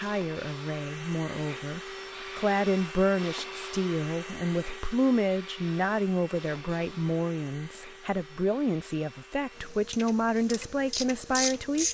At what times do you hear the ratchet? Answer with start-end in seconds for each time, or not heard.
9.9-11.8.